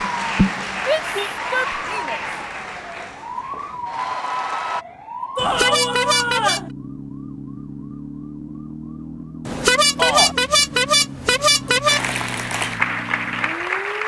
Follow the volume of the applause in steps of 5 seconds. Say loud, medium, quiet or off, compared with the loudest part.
loud, off, loud.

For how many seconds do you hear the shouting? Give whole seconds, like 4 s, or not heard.
3 s.